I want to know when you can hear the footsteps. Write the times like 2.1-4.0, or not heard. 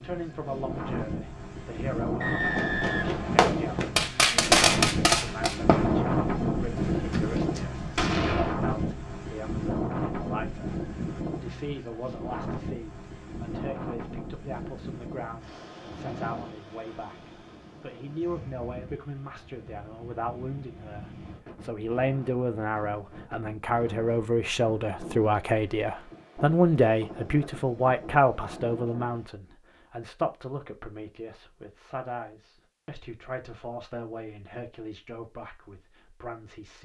not heard.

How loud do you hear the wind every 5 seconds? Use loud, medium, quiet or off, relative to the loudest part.
loud, loud, medium, quiet, quiet, quiet, off, off.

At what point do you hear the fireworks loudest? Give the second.
5 s.